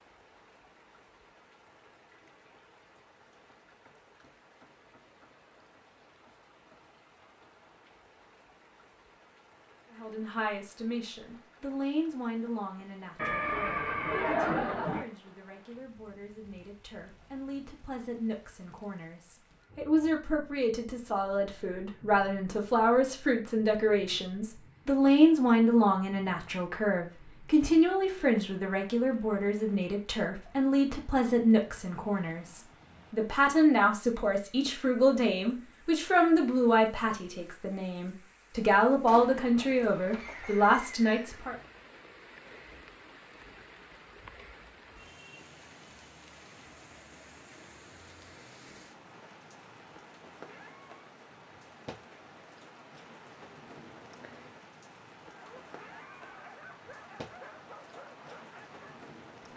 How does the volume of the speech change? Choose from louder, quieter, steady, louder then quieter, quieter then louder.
louder.